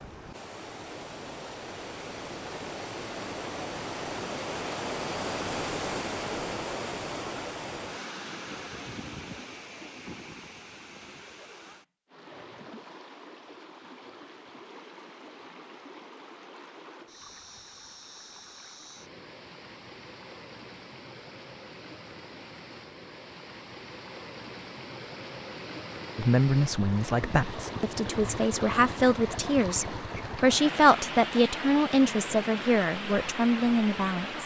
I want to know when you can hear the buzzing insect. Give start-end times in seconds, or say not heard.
not heard.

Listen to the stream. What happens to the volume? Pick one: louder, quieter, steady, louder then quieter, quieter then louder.
quieter then louder.